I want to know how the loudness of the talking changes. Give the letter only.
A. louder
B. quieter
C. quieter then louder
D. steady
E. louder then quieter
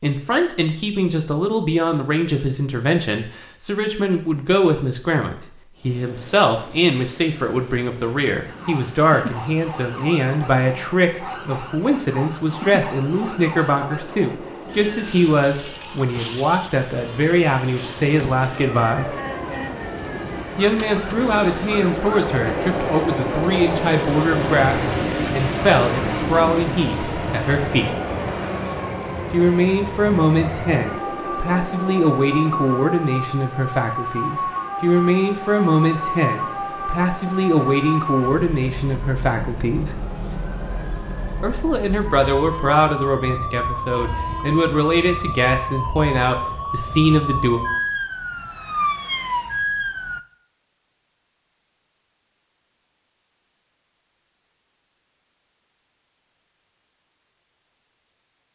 D.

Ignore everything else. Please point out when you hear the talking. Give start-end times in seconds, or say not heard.
0.0-19.1, 20.6-27.9, 29.3-40.0, 41.4-47.6.